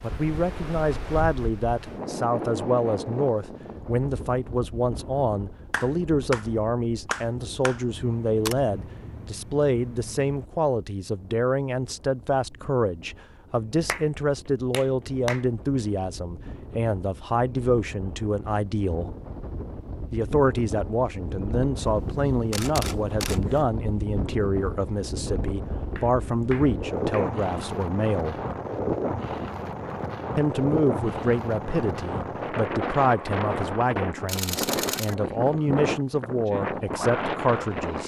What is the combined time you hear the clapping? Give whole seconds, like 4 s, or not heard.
5 s.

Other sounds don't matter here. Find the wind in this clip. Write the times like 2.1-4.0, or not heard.
0.0-38.0.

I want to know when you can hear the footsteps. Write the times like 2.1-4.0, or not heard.
not heard.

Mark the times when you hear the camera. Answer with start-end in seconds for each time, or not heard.
7.9-10.5, 21.8-23.6, 34.2-35.1.